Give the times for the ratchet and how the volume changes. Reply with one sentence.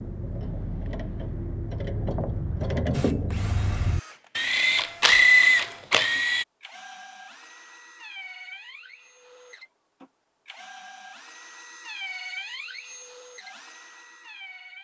The ratchet can be heard from 0.0 to 6.5 s, getting louder.